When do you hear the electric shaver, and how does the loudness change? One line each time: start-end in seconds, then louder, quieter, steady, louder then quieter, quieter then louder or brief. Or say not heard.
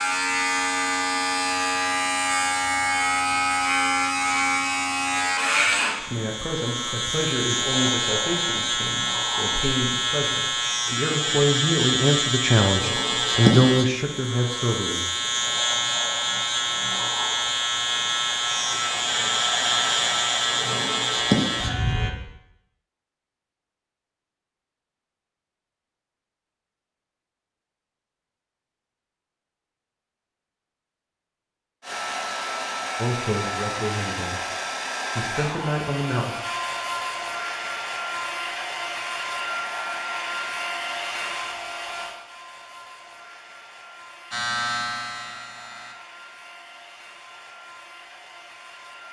0.0-22.1 steady
44.3-46.0 brief.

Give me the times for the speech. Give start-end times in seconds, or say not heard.
6.0-15.1, 33.0-34.4, 35.1-36.3.